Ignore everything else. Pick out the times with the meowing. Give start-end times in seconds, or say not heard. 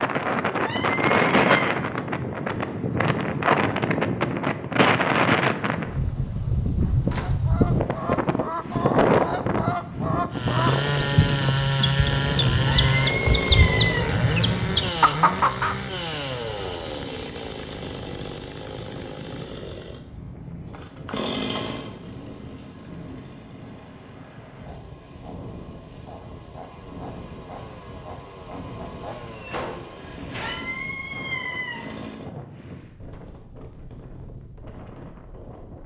0.6-1.8, 12.7-14.2, 30.4-31.9.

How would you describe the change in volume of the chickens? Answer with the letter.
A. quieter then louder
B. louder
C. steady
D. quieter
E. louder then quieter
B.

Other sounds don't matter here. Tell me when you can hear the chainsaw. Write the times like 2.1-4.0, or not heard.
10.3-32.3.